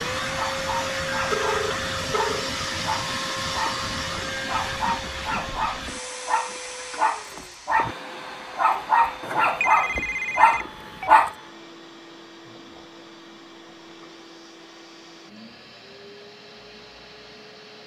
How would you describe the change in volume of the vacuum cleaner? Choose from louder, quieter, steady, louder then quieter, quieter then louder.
quieter.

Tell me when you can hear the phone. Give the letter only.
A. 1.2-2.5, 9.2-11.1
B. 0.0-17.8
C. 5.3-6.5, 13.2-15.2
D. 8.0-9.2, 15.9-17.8
A.